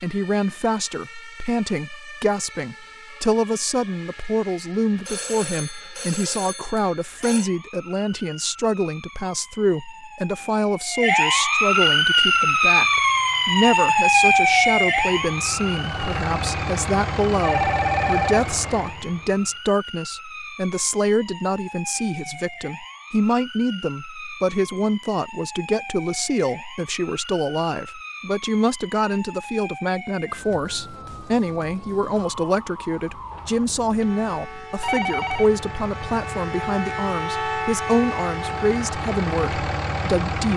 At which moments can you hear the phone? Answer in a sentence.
The phone can be heard from 5.0 to 7.5 s, from 17.4 to 18.4 s and from 33.3 to 35.5 s.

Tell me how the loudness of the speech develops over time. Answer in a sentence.
The volume of the speech stays about the same.